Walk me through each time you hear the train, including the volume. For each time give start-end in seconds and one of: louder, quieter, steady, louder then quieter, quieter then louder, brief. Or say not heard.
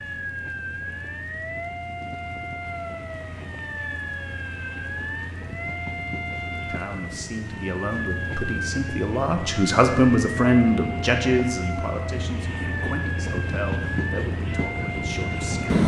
0.0-15.8 louder.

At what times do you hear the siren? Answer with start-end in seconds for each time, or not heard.
0.0-15.8.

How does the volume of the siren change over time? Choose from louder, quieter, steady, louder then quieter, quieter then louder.
steady.